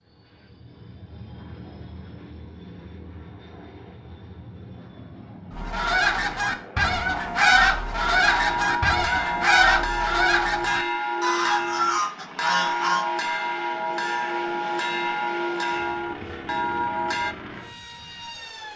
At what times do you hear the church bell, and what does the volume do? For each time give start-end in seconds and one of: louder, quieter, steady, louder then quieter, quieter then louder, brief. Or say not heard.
8.2-17.4 steady.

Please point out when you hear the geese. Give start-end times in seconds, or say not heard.
5.5-13.1.